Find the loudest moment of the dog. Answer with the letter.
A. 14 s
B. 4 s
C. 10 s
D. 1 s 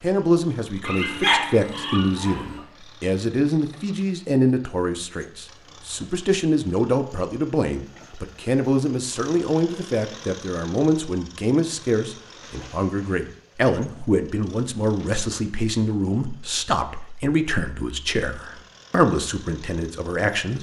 D.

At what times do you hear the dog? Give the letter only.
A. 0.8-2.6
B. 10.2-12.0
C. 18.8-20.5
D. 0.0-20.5
A.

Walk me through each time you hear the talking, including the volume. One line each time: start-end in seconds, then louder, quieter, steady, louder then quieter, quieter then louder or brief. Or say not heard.
0.0-20.5 steady.